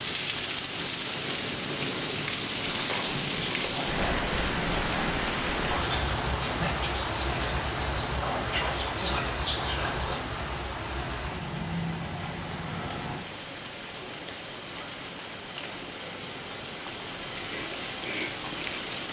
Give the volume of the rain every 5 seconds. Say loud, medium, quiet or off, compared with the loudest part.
loud, loud, medium, medium.